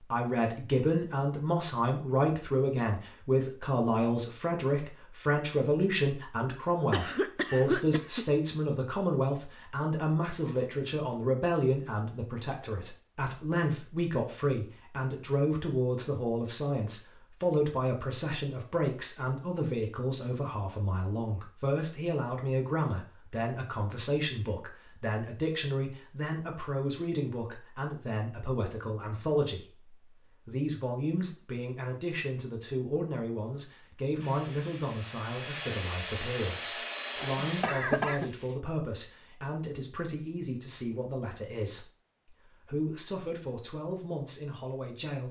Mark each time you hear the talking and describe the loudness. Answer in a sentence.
You can hear the talking from 0.0 to 45.2 s, getting quieter.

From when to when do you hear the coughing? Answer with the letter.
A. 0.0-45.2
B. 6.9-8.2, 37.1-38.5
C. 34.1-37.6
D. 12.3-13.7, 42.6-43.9
B.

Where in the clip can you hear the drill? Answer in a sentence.
The drill can be heard from 34.1 to 37.6 s.